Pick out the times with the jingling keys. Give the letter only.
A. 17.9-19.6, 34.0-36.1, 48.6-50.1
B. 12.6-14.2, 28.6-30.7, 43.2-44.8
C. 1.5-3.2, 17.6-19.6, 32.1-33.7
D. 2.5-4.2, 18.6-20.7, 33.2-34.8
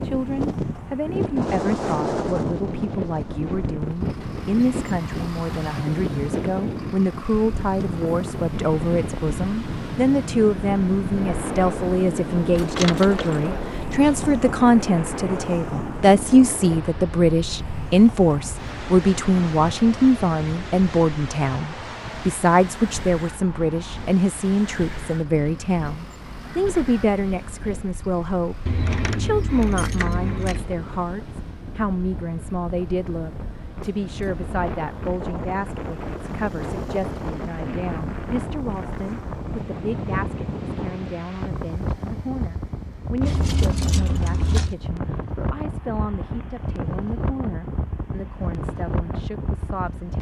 B.